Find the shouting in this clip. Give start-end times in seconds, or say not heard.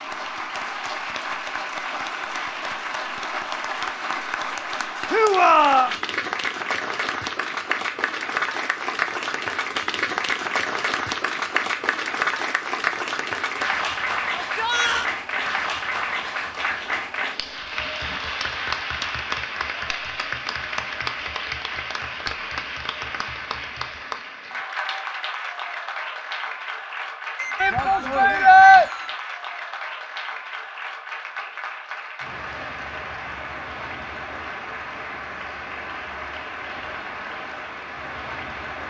5.1-5.9, 14.3-15.1, 27.6-28.9.